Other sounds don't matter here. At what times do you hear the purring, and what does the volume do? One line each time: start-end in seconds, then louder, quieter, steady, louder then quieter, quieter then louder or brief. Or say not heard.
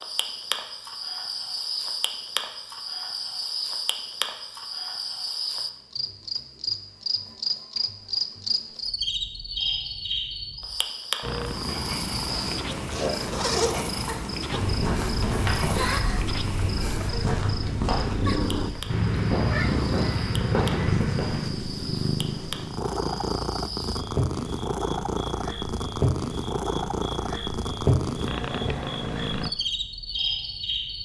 11.2-29.5 steady.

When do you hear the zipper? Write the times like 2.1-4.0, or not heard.
12.2-13.9.